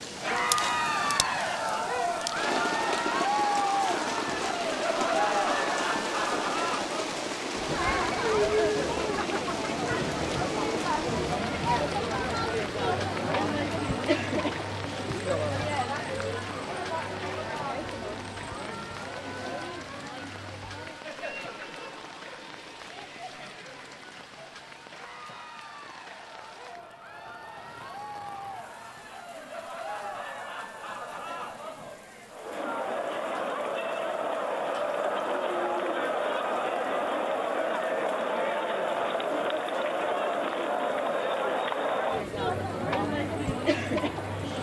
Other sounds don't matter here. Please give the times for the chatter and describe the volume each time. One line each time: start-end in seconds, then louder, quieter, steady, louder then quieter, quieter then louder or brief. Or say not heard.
0.1-44.5 quieter then louder.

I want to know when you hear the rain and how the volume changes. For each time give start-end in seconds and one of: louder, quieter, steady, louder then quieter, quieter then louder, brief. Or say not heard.
0.0-44.5 quieter.